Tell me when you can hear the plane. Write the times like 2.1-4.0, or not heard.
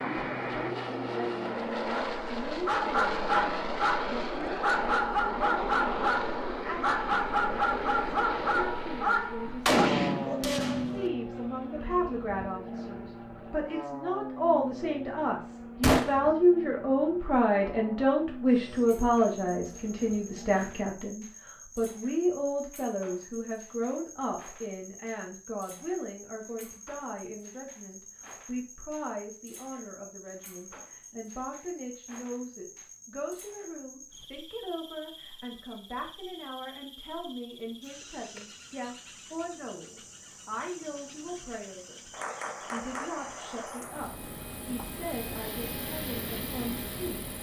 0.0-20.9, 43.8-47.3.